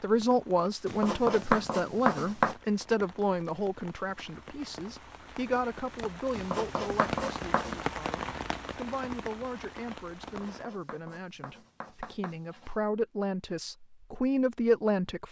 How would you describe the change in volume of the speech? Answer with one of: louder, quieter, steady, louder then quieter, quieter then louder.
quieter then louder.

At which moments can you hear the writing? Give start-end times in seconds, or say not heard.
0.8-2.5, 6.3-7.8, 10.2-12.8.